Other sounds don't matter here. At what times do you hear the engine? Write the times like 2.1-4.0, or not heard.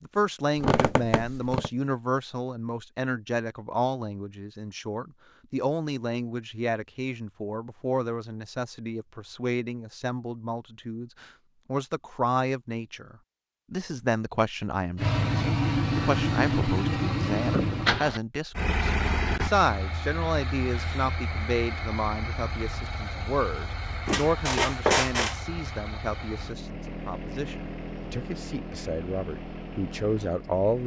14.9-30.8.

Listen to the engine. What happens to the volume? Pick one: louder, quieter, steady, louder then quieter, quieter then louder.
quieter.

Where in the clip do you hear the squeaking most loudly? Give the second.
25 s.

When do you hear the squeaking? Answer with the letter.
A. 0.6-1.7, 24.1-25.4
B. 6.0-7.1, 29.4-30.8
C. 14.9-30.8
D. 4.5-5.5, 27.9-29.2
A.